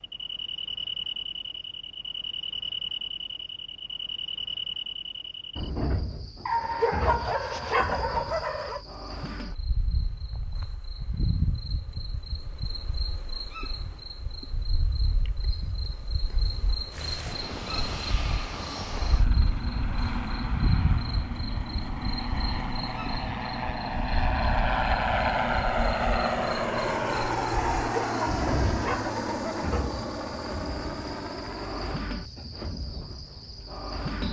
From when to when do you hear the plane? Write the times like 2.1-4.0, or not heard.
16.9-32.0.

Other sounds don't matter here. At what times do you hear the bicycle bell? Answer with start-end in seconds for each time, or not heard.
not heard.